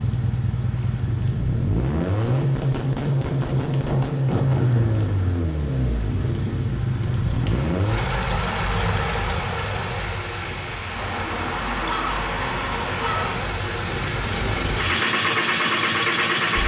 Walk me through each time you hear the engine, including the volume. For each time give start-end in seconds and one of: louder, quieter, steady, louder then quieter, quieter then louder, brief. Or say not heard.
0.0-16.6 quieter then louder.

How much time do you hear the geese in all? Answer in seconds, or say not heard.
4 s.